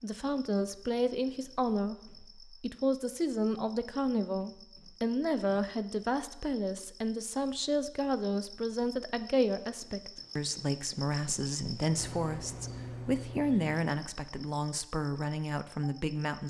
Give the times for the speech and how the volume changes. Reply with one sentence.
You can hear the speech from 0.0 to 16.4 s, at a steady volume.